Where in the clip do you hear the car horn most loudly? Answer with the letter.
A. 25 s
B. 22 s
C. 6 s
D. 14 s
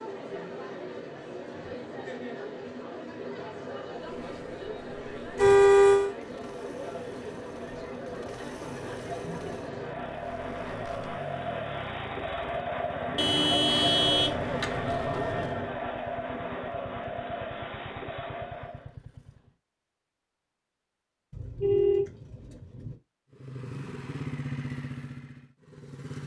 C.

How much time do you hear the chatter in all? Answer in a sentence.
You can hear the chatter for 19 seconds altogether.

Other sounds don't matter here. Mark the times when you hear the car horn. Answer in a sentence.
The car horn can be heard from 5.3 to 6.2 s, from 13.2 to 15.7 s and from 21.3 to 22.9 s.